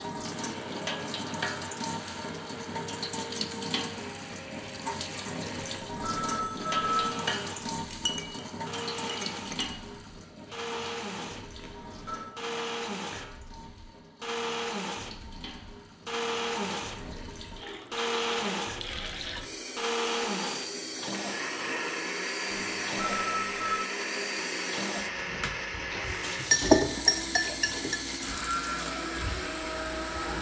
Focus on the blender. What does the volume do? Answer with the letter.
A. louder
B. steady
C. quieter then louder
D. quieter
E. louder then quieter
A.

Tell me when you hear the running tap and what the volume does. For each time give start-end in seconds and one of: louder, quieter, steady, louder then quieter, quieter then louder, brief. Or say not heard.
0.0-30.3 quieter then louder.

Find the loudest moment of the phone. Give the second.
7 s.